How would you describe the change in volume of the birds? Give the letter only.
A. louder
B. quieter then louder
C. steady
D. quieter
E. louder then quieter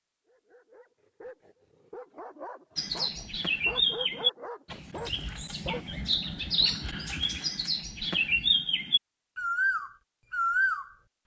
B.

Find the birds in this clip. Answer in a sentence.
The birds can be heard from 2.8 to 11.2 s.